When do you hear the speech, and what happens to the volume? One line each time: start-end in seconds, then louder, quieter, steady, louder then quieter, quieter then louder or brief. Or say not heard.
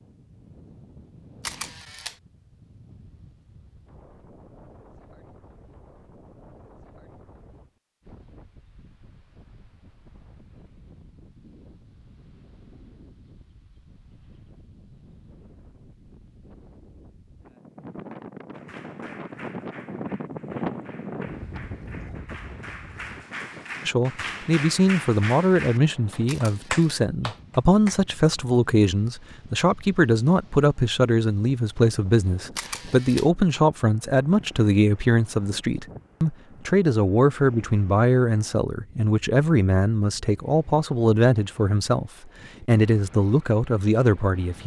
23.9-44.6 steady.